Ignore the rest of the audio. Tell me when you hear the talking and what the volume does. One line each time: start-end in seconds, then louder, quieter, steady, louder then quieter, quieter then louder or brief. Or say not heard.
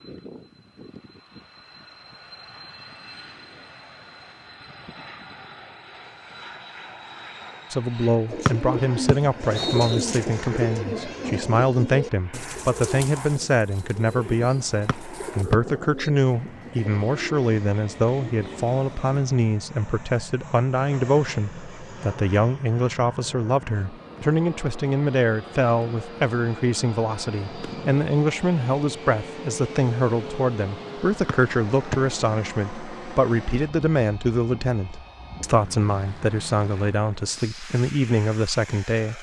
7.7-39.1 steady.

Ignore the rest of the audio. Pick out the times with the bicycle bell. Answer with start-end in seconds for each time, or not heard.
not heard.